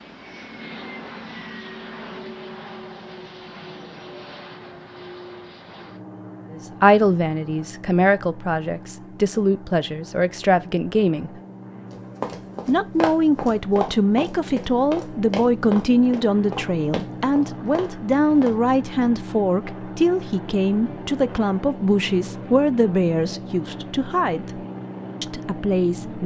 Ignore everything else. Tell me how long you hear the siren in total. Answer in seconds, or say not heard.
not heard.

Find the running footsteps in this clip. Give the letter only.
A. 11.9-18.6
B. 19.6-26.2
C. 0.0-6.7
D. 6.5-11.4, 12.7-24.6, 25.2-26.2
A.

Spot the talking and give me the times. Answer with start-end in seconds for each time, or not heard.
6.5-11.4, 12.7-24.6, 25.2-26.2.